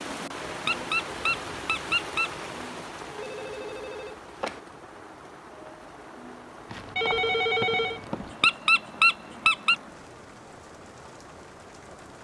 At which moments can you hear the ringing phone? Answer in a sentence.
You can hear the ringing phone from 3.1 to 4.6 s and from 6.7 to 8.3 s.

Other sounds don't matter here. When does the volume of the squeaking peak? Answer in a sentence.
The volume of the squeaking peaks at 9 seconds.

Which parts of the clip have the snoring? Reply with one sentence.
You can't hear the snoring here.